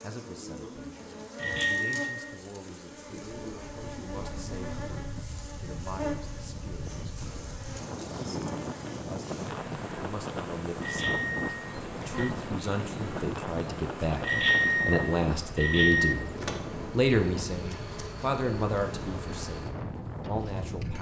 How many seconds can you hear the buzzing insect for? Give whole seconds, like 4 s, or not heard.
21 s.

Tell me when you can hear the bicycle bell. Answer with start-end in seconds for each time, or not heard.
1.4-2.2, 10.8-12.3, 14.2-16.1.